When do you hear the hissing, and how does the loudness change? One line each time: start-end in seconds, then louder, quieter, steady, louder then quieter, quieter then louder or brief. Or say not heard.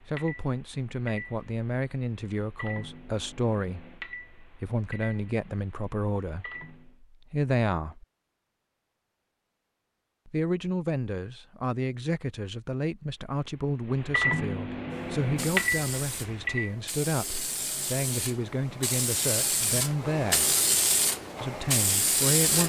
14.9-22.6 louder.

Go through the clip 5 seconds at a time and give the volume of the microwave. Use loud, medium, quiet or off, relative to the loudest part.
quiet, quiet, loud, loud, off.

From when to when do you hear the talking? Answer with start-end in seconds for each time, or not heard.
0.0-8.1, 10.2-20.6, 21.4-22.6.